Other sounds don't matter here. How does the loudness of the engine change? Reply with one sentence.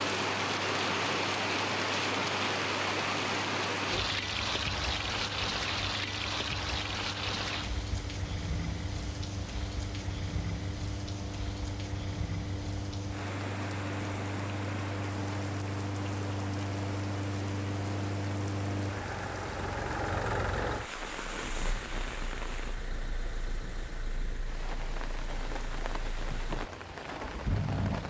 The volume of the engine goes up, then down.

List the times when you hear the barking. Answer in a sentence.
The barking can't be heard in this clip.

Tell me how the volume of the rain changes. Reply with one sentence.
The loudness of the rain goes down.